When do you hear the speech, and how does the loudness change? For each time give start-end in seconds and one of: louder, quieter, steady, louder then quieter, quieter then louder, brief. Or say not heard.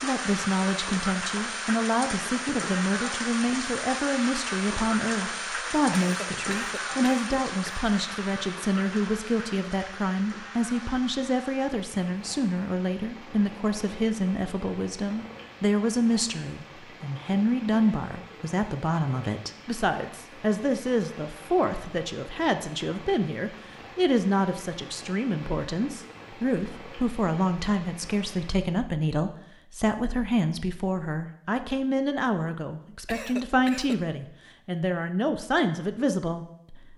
0.0-36.9 steady.